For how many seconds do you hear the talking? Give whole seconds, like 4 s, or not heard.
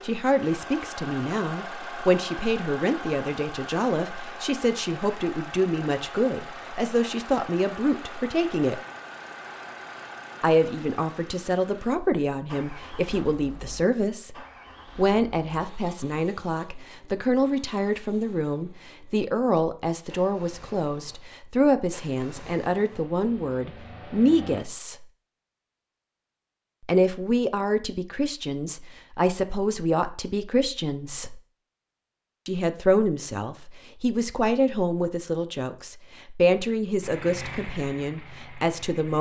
34 s.